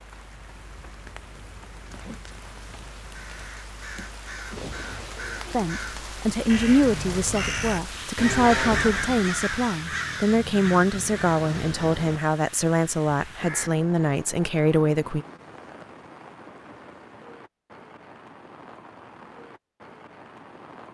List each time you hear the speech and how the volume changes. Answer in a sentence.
The speech can be heard from 5.5 to 15.2 s, at a steady volume.